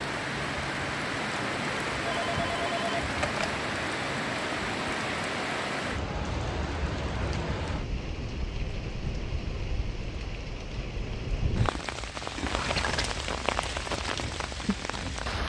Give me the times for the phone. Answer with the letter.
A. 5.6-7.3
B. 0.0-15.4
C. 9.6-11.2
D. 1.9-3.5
D.